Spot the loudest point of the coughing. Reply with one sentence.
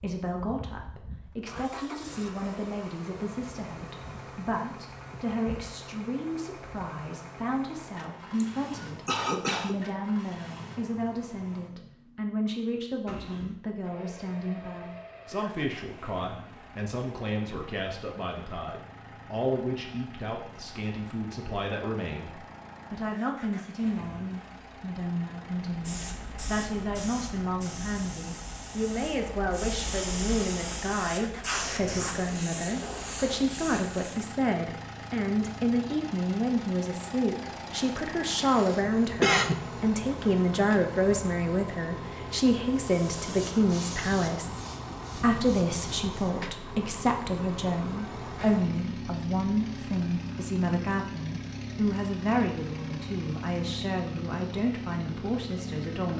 The volume of the coughing peaks at 39 seconds.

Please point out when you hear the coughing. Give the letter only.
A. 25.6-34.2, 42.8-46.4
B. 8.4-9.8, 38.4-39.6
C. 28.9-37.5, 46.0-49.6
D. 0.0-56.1
B.